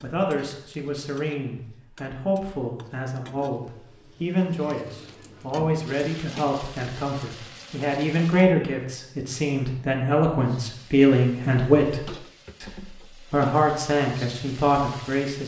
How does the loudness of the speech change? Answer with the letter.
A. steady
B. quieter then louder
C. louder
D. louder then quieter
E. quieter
C.